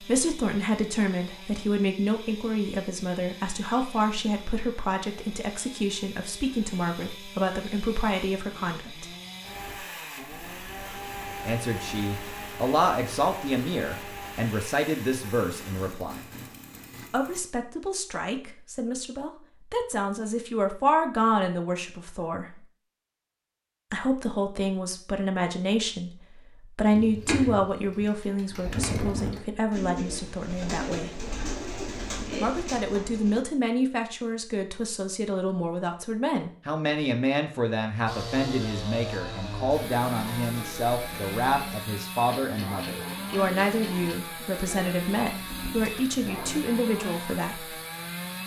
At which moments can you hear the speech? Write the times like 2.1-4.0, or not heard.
0.0-9.1, 11.4-16.2, 17.1-22.5, 23.9-31.1, 32.4-47.8.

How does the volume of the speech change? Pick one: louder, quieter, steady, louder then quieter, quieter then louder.
steady.